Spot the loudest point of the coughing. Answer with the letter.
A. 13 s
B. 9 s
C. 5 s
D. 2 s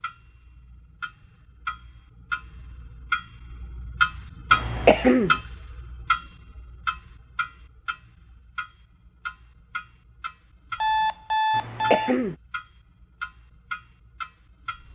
C.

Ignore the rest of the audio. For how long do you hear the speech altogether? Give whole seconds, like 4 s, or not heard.
not heard.